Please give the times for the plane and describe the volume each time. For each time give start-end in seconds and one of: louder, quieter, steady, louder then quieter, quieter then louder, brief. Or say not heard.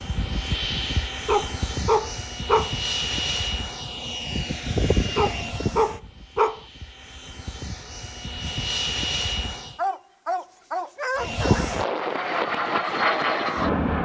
0.0-9.8 quieter then louder
11.2-13.9 brief.